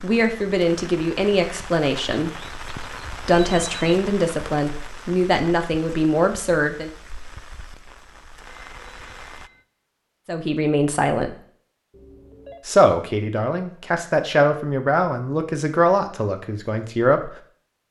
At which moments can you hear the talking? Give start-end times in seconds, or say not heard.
0.0-6.9, 10.2-11.3, 12.7-17.3.